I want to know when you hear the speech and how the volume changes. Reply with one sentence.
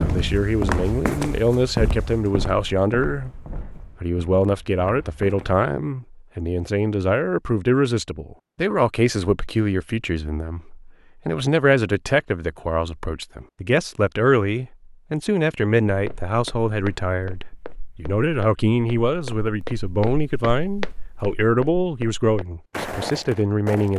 The speech can be heard from 0.0 to 23.9 s, at a steady volume.